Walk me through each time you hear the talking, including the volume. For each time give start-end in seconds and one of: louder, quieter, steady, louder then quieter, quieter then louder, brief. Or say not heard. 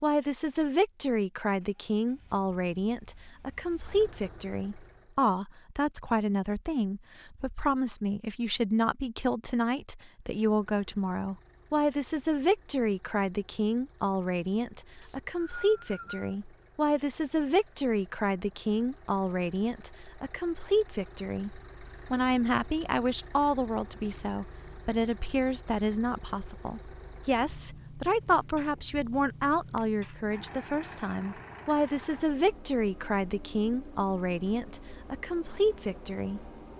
0.0-36.7 steady.